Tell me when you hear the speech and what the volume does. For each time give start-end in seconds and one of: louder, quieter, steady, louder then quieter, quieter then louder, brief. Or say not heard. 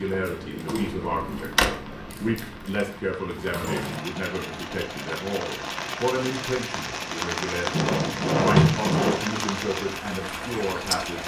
0.0-11.2 steady.